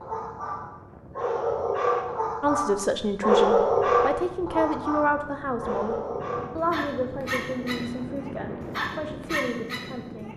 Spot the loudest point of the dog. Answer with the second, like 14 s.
3 s.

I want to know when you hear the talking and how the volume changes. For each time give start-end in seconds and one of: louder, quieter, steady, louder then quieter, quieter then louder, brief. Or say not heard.
2.4-10.3 quieter.